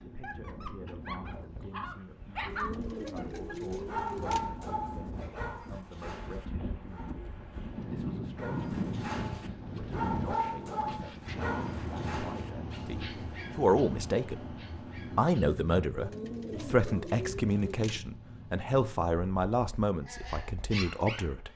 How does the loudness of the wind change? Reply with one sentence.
The loudness of the wind goes up, then down.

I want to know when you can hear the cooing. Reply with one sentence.
You can hear the cooing from 2.5 to 4.5 s and from 15.9 to 18.0 s.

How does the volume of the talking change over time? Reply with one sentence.
The volume of the talking goes up.